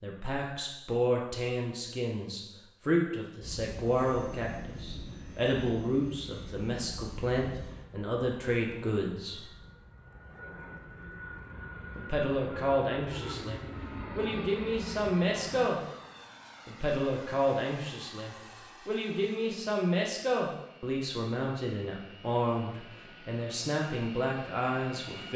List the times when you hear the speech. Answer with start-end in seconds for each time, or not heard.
0.0-9.4, 11.9-15.8, 16.6-25.3.